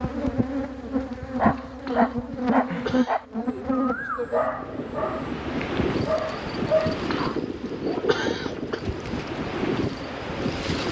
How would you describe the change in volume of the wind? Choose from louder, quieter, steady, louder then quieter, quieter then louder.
steady.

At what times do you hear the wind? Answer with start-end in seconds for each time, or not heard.
4.5-10.8.